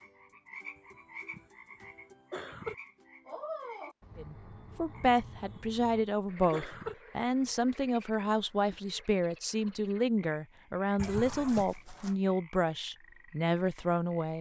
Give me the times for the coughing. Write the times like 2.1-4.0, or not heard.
1.3-2.8, 5.5-7.0, 10.9-11.7.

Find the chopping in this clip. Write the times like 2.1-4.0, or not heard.
not heard.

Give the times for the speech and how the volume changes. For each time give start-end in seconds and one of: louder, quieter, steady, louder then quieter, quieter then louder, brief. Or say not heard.
4.2-14.3 steady.